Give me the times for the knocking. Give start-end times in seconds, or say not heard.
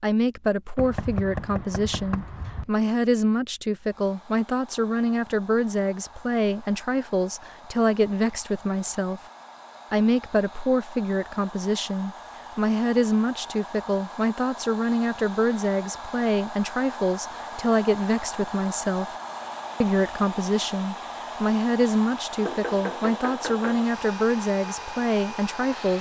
0.8-2.7, 22.4-23.9.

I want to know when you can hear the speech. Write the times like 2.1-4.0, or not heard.
0.0-9.2, 9.9-19.1, 19.8-25.9.